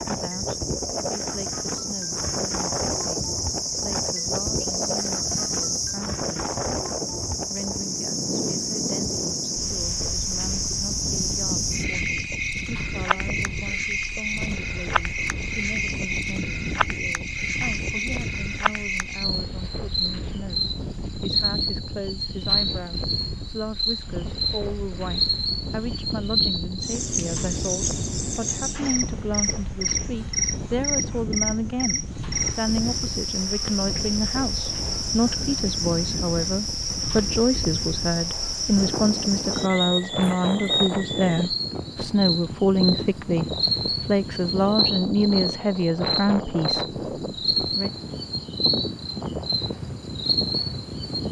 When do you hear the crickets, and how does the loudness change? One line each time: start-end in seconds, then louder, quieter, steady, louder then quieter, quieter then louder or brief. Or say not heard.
0.0-51.2 steady.